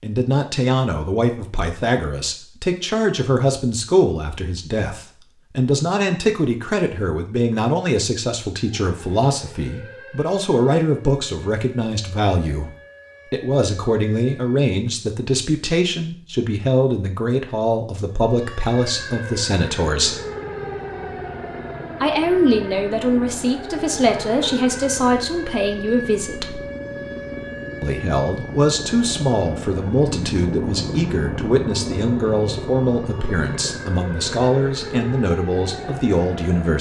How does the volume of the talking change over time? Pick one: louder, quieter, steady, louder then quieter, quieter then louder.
steady.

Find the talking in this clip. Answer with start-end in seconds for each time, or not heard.
0.0-12.7, 13.3-20.2, 22.0-26.6, 27.8-36.7.